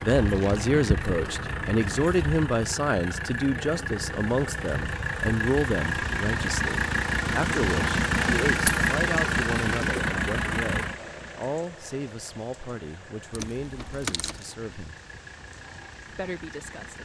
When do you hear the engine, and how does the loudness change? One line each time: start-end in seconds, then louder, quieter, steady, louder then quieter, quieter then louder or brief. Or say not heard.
0.0-17.0 louder then quieter.